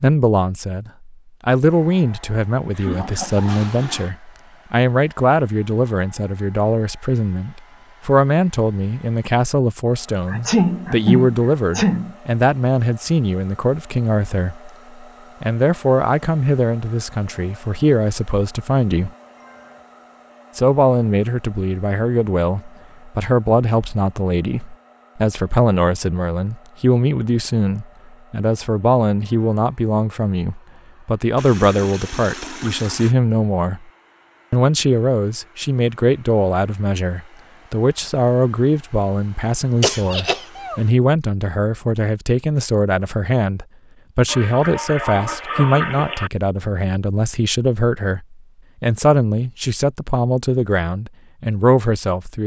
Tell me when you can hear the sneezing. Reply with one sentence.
You can hear the sneezing from 10.3 to 12.2 s and from 39.8 to 40.8 s.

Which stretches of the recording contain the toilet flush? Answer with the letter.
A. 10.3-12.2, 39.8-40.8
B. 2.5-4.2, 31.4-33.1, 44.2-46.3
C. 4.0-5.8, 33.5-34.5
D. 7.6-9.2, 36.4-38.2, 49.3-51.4
B.